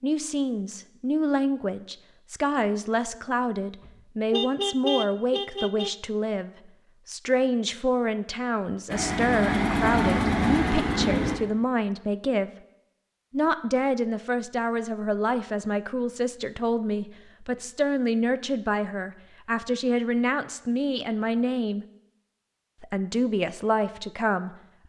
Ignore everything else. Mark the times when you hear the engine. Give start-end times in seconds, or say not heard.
8.9-11.4.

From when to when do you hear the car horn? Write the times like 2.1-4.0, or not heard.
3.8-6.0.